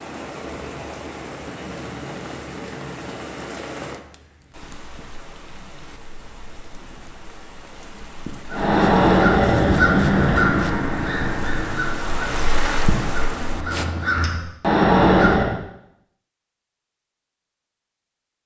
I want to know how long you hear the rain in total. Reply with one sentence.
You can hear the rain for 14 seconds altogether.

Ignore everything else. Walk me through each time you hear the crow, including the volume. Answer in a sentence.
You can hear the crow from 8.5 to 15.6 s, getting quieter then louder.